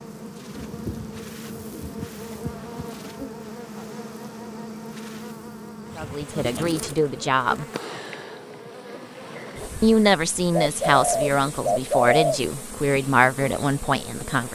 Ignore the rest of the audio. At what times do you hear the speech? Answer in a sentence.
You can hear the speech from 6.0 to 7.7 s and from 9.8 to 14.5 s.